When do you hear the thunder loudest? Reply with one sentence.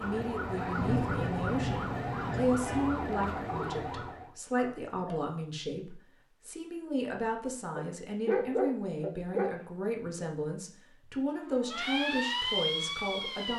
The loudest moment of the thunder is at 1 second.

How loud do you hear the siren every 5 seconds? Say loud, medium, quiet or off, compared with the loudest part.
loud, off, loud.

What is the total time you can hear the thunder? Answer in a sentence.
The thunder can be heard for 2 seconds in total.